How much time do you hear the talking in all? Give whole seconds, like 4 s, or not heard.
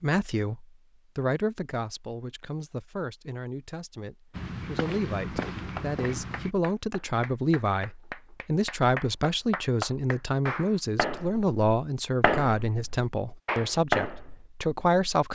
15 s.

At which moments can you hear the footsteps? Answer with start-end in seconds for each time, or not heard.
4.3-6.5.